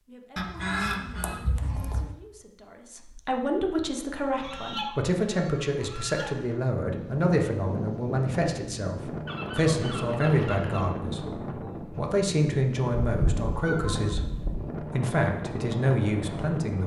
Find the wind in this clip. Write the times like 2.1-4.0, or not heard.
6.8-16.8.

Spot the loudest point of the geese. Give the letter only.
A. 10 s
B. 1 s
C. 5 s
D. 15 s
B.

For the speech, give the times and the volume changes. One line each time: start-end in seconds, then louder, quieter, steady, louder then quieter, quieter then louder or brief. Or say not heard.
0.0-16.8 louder.